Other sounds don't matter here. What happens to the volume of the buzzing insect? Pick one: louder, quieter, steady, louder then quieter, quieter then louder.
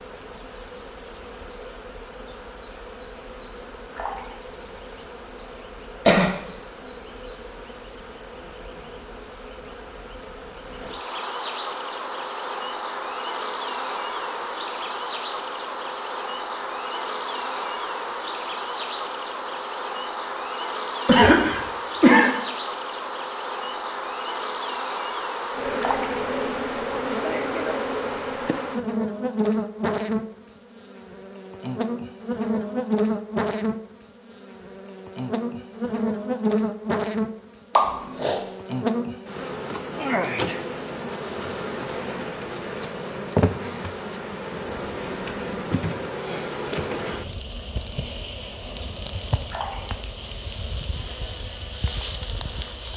louder.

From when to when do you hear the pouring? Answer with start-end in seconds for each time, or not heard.
3.8-4.4, 25.6-26.2, 49.4-50.0.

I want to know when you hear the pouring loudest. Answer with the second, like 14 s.
26 s.